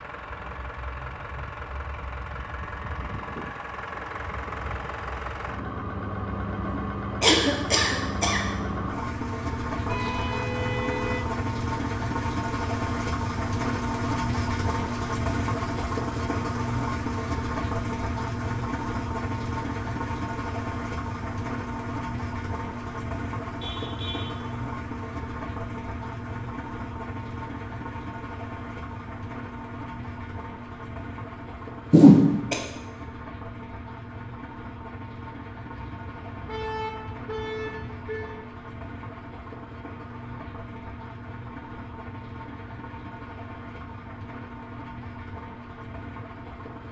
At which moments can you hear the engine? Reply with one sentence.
The engine can be heard from 0.0 to 46.8 s.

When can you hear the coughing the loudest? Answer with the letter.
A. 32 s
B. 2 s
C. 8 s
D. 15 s
A.